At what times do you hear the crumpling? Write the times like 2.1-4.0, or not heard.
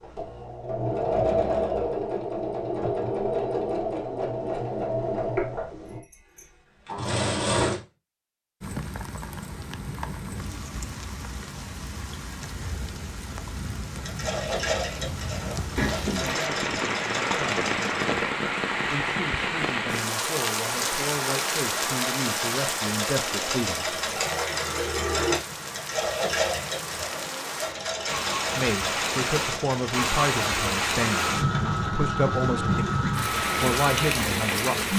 15.8-16.5.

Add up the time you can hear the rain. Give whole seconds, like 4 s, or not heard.
26 s.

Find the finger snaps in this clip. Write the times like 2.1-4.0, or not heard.
not heard.